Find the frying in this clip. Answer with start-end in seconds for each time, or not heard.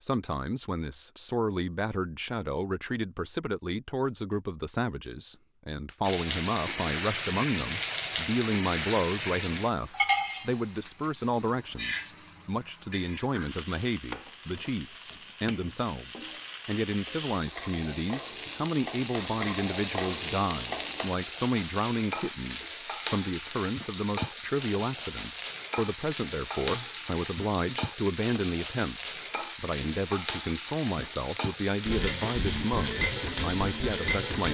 6.0-34.4.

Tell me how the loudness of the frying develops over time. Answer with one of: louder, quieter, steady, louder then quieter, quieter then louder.
quieter then louder.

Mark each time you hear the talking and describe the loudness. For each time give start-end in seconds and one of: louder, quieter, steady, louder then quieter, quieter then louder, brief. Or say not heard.
0.0-34.4 steady.